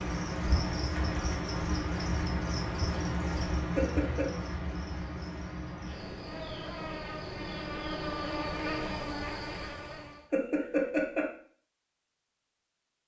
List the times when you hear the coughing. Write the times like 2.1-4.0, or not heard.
3.8-4.3, 10.3-11.3.